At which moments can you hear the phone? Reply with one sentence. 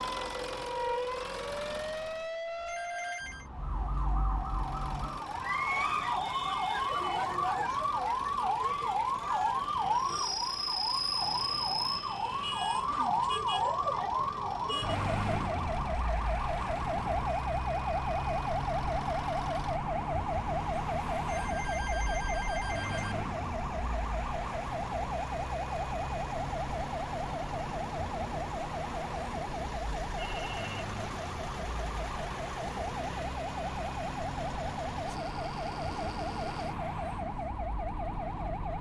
You can hear the phone from 2.6 to 3.5 s, from 21.2 to 23.1 s and from 30.1 to 30.9 s.